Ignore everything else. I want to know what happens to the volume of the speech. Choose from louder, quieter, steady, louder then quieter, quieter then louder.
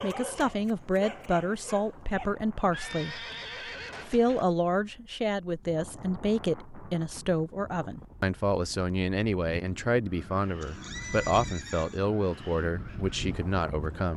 steady.